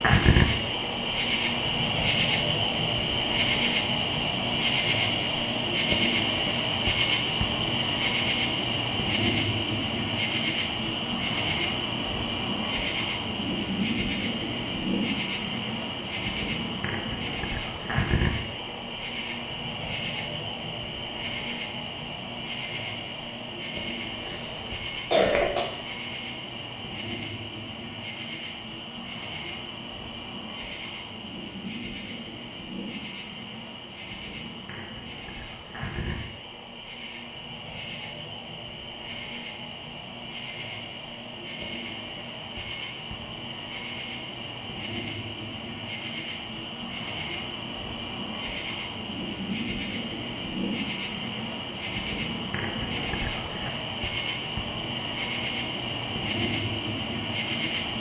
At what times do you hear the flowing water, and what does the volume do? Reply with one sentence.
You can't hear the flowing water here.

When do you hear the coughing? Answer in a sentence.
The coughing can be heard from 24.2 to 25.6 s.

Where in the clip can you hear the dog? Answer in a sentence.
You can't hear the dog here.